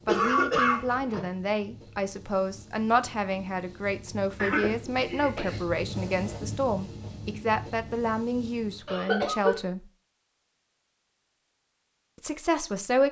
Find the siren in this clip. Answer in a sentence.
The siren can't be heard in this clip.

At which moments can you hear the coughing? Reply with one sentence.
The coughing can be heard from 0.1 to 1.2 s, from 4.3 to 6.4 s and from 8.8 to 9.6 s.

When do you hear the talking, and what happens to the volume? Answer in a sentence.
You can hear the talking from 0.1 to 9.8 s, at a steady volume; and briefly from 12.2 to 13.0 s.